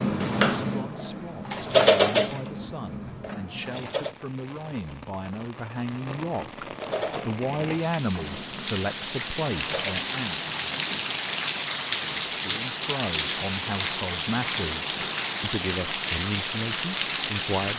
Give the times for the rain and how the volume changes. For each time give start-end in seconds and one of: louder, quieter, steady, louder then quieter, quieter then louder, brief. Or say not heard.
3.6-17.7 louder.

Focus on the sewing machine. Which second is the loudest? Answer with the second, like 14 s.
2 s.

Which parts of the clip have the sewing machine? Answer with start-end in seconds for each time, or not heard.
0.0-4.1, 6.7-10.1.